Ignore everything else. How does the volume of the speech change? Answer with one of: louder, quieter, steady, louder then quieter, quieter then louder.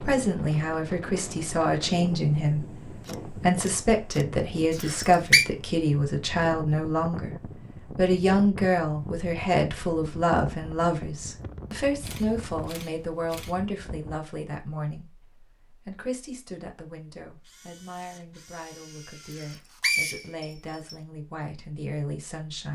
quieter.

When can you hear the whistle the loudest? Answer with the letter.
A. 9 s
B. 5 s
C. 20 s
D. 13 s
B.